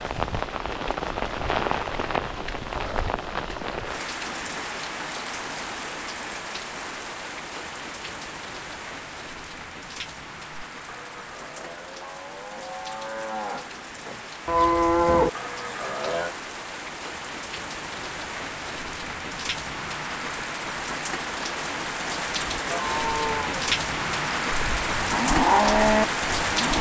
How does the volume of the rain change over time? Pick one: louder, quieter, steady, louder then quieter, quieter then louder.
quieter then louder.